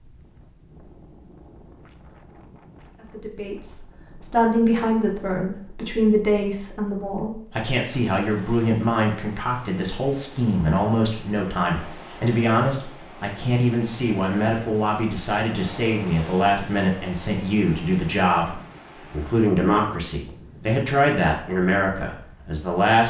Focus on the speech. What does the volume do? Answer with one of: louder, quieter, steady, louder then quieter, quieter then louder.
steady.